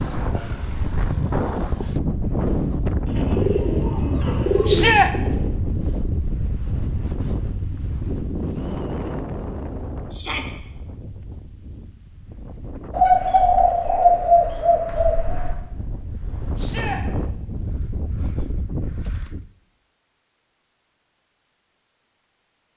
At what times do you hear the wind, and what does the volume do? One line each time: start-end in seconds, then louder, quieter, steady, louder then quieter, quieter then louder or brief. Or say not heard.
0.0-19.5 quieter then louder.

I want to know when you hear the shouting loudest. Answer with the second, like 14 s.
5 s.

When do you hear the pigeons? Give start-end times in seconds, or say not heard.
3.0-5.0, 12.9-15.6.